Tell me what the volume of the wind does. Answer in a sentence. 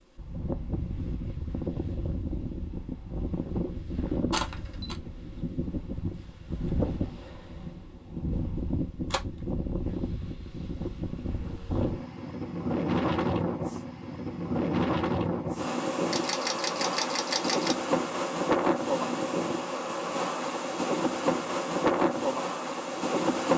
The volume of the wind goes up.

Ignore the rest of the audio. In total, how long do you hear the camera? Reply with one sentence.
The camera can be heard for 3 seconds in total.